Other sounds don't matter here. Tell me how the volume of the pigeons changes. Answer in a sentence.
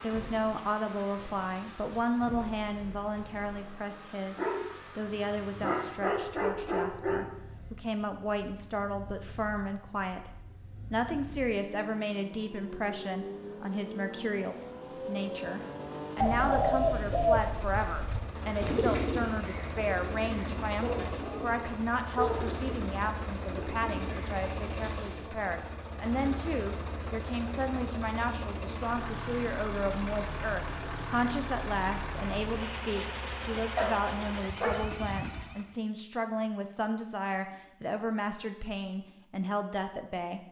The volume of the pigeons goes down.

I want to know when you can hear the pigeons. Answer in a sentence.
The pigeons can be heard from 16.2 to 25.2 s.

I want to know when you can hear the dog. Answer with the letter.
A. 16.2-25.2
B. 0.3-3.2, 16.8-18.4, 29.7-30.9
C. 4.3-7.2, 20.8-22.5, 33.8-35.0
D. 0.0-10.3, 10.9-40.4
C.